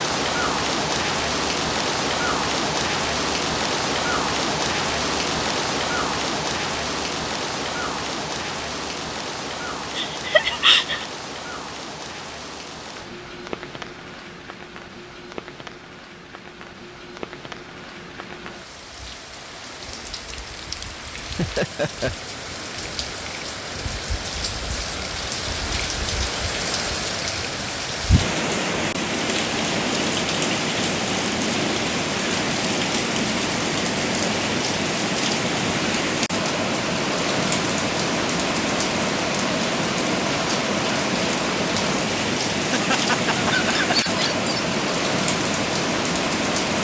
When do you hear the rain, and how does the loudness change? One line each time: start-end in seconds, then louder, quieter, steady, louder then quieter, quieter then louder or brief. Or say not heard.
0.0-46.7 quieter then louder.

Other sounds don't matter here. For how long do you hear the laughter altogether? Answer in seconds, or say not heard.
4 s.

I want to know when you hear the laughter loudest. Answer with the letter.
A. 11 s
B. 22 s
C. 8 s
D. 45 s
A.